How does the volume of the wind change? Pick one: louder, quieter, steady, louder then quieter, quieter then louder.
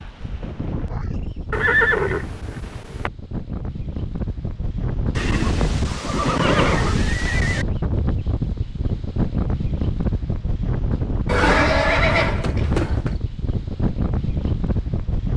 louder.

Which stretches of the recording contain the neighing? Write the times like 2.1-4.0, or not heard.
1.5-3.1, 5.2-7.7, 11.2-13.2.